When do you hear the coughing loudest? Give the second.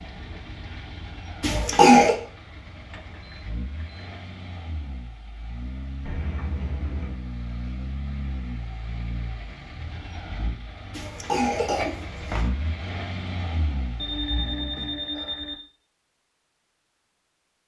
2 s.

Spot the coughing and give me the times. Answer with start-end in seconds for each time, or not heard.
1.4-2.1, 10.9-12.5.